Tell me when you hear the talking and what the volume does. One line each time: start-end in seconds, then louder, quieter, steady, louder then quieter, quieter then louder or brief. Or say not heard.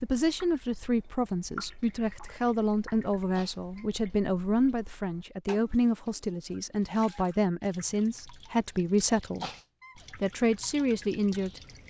0.0-9.5 steady
10.1-11.6 brief.